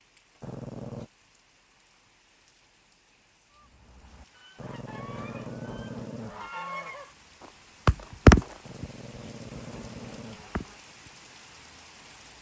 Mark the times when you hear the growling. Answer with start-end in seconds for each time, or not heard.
0.4-1.1, 4.5-6.5, 8.6-10.8.